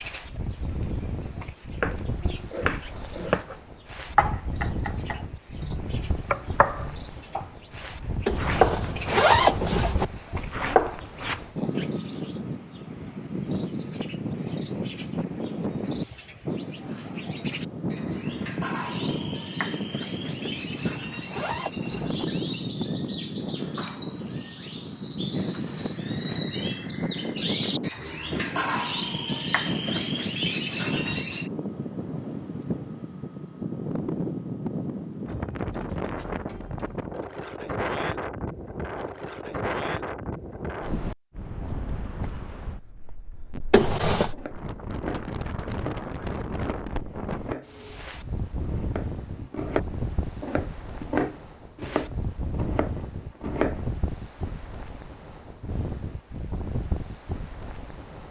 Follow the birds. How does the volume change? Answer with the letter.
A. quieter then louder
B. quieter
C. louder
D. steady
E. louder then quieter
C.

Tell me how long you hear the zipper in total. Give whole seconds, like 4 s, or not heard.
4 s.